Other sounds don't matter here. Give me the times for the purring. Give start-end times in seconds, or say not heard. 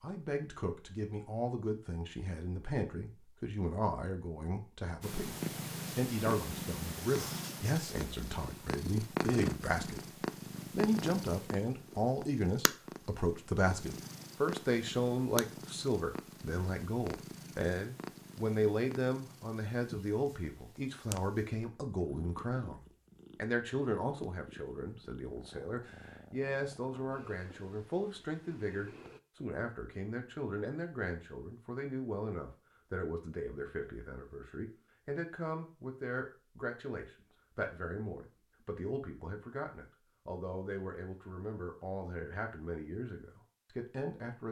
5.0-29.2.